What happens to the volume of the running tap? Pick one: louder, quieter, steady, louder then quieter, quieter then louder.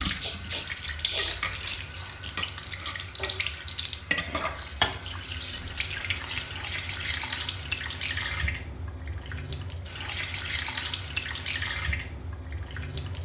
steady.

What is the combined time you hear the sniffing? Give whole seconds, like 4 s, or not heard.
2 s.